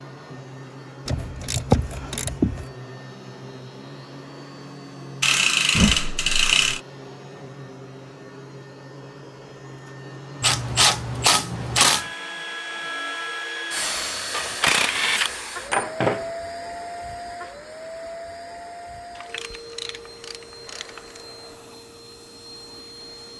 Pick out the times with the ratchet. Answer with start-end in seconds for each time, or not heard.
1.1-2.6, 5.2-6.8, 10.4-12.1, 14.3-16.3, 19.1-21.2.